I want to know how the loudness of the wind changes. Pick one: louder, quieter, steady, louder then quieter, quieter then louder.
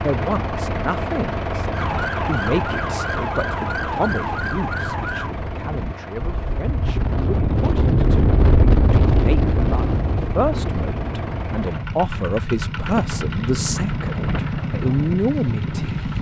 louder then quieter.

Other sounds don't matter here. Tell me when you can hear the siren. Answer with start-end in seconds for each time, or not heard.
1.7-5.3.